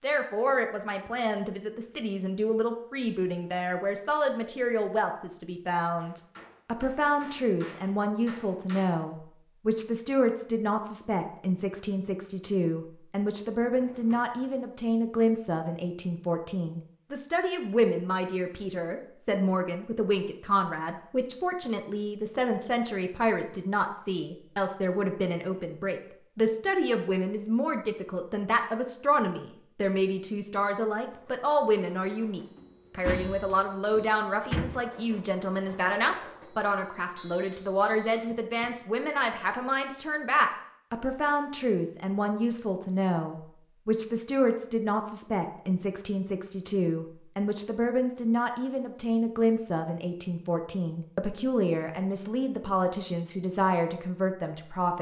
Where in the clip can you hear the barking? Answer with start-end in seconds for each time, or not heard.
not heard.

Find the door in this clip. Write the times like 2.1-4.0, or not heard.
13.6-14.4, 32.5-34.7.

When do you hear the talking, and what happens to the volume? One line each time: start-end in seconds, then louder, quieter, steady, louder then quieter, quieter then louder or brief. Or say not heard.
0.0-54.9 steady.